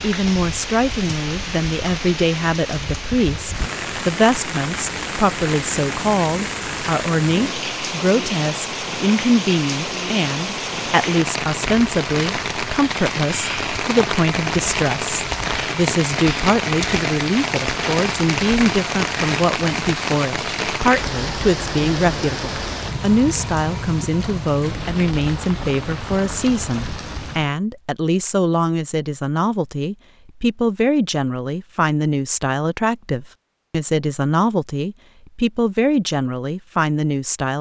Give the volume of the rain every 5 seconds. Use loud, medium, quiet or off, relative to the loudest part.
medium, loud, loud, loud, loud, medium, off, off.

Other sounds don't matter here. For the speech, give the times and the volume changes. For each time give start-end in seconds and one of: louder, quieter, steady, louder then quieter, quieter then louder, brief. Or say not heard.
0.0-37.5 steady.